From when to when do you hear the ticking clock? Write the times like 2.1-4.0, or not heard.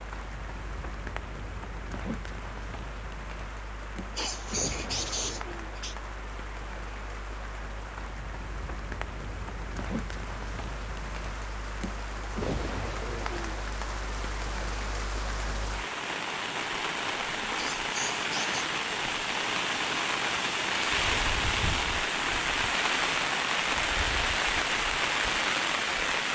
not heard.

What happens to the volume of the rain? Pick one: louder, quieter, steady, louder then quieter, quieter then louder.
louder.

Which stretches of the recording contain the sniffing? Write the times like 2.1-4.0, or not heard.
4.0-6.0, 17.4-18.6.